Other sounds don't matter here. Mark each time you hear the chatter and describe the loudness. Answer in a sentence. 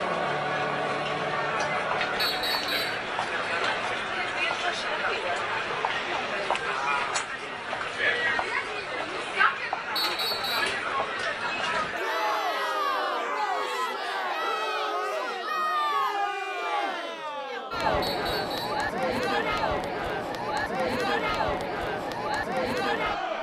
You can hear the chatter from 0.0 to 23.3 s, at a steady volume.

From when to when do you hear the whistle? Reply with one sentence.
You can hear the whistle from 2.1 to 3.0 s, from 9.9 to 10.8 s and from 18.0 to 18.9 s.